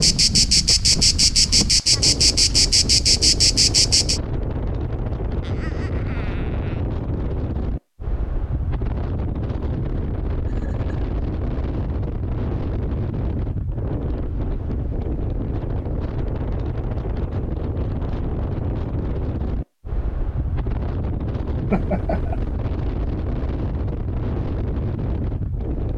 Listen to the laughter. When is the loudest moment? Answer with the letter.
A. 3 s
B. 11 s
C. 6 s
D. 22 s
D.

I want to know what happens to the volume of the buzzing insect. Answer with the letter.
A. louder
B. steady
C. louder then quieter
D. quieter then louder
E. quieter
B.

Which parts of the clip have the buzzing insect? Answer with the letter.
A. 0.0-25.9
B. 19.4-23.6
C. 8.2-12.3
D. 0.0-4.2
D.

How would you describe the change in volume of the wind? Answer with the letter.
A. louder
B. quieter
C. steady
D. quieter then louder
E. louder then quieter
C.